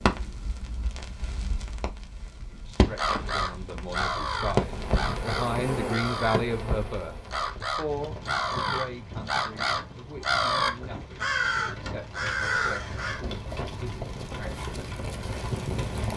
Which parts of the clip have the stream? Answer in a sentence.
The stream can't be heard in this clip.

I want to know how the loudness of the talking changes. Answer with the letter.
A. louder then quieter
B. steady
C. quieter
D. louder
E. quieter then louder
A.